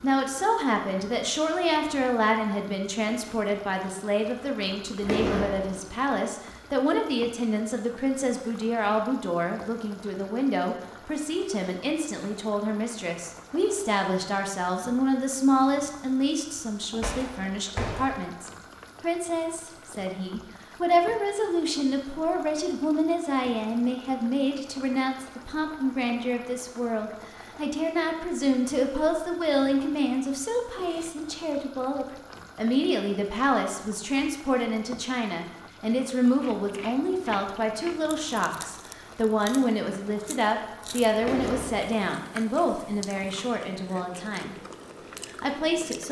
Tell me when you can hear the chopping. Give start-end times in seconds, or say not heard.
not heard.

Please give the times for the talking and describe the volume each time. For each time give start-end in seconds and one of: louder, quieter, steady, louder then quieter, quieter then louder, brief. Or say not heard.
0.0-44.5 steady
45.2-46.0 brief.